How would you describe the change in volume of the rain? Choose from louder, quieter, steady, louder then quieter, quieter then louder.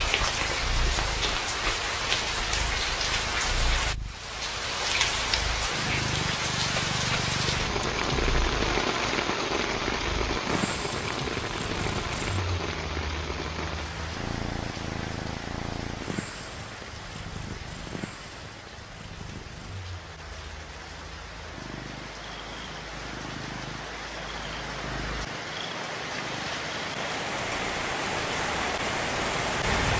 quieter then louder.